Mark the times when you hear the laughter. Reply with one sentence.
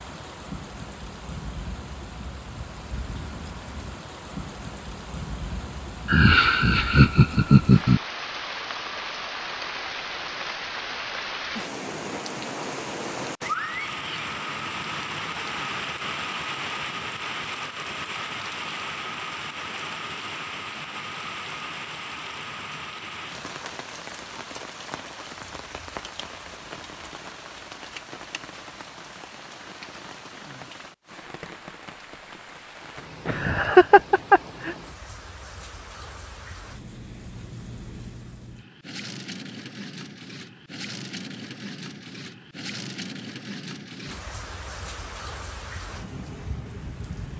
The laughter can be heard from 6.0 to 8.0 s and from 33.2 to 34.8 s.